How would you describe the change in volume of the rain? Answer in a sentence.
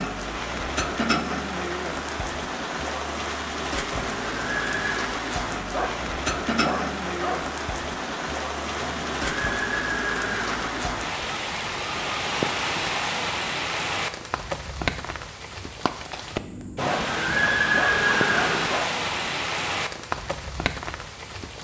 The loudness of the rain stays about the same.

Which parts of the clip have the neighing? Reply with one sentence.
You can hear the neighing from 3.9 to 5.1 s, from 8.8 to 10.8 s and from 16.8 to 18.8 s.